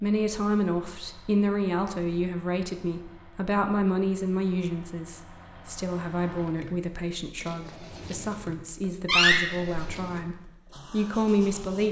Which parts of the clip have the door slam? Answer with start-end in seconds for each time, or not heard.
9.1-9.9.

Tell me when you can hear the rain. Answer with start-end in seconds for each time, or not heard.
not heard.